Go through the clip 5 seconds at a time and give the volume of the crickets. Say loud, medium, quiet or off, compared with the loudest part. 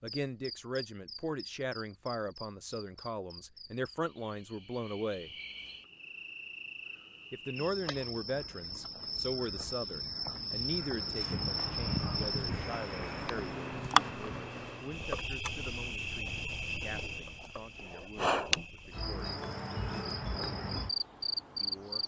quiet, medium, loud, loud, loud.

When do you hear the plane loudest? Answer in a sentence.
The volume of the plane peaks at 12 seconds.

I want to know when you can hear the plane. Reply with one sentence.
You can hear the plane from 10.9 to 15.2 s.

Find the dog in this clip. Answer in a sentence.
The dog can't be heard in this clip.